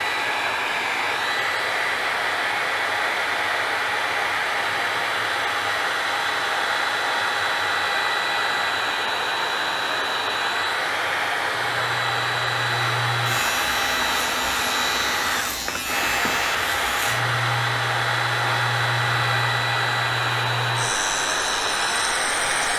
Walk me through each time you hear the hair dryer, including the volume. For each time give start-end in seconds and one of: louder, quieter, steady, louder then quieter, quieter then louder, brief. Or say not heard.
0.0-22.7 steady.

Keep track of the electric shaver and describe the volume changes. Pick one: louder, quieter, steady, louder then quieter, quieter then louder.
steady.